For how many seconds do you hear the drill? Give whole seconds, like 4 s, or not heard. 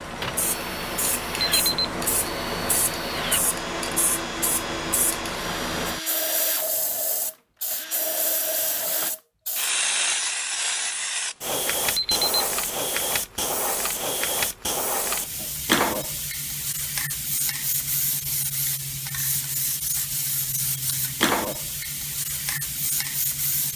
9 s.